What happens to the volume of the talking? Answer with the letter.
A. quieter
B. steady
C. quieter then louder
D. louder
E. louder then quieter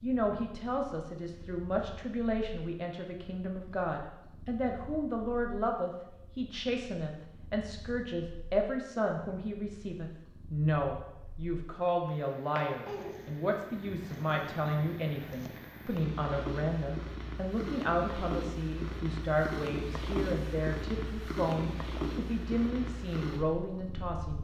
B.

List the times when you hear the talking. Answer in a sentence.
You can hear the talking from 0.0 to 24.3 s.